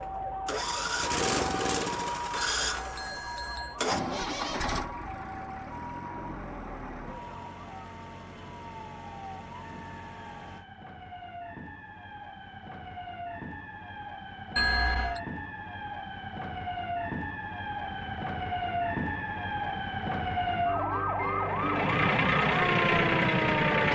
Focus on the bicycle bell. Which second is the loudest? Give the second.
15 s.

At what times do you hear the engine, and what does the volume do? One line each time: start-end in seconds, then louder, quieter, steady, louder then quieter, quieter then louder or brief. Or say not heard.
0.0-10.7 quieter
17.8-23.8 louder.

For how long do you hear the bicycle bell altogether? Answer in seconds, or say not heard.
2 s.